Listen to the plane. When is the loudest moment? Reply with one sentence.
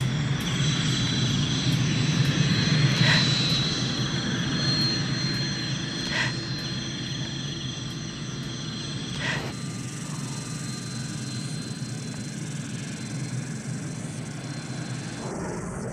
The loudest moment of the plane is at 3 seconds.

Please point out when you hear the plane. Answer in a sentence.
The plane can be heard from 0.0 to 15.8 s.